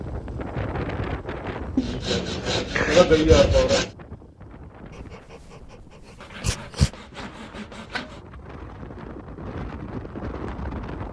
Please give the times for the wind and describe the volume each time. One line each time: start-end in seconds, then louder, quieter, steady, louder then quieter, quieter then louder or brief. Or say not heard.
0.0-11.0 quieter then louder.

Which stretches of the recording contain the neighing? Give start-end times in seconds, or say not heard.
not heard.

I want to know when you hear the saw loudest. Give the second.
3 s.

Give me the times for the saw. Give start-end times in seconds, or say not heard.
1.8-3.9, 6.2-8.2.